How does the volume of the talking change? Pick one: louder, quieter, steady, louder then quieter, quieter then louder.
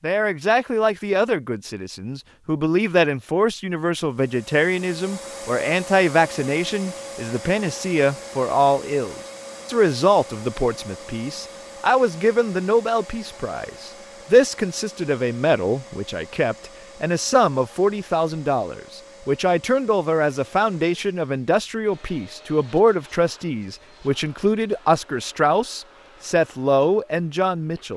steady.